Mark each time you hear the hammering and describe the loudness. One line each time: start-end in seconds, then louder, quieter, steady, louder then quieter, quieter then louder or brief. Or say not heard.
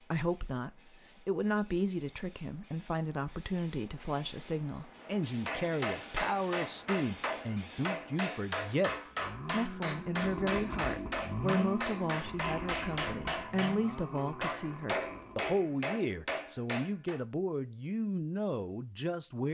5.0-17.2 steady.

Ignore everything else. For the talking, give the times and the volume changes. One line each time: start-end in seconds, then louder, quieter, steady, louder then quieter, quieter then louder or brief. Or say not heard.
0.0-19.5 steady.